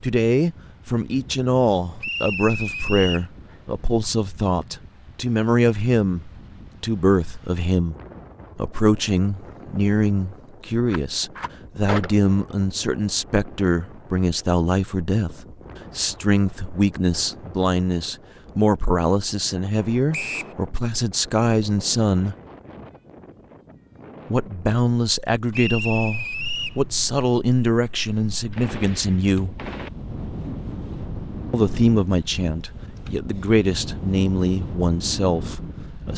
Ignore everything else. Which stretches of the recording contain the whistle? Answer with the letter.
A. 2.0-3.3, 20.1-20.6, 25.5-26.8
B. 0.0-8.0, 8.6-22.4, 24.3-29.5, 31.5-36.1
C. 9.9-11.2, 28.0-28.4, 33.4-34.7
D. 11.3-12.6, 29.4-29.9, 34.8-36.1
A.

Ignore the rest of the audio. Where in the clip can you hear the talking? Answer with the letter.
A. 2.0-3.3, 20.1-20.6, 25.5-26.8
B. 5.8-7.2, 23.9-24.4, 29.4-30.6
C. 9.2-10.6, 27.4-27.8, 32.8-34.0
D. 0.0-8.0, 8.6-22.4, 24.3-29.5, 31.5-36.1
D.